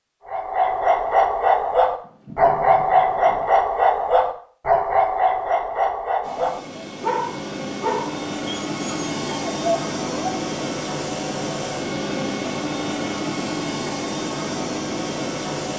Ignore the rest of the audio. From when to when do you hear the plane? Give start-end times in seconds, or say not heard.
6.2-15.7.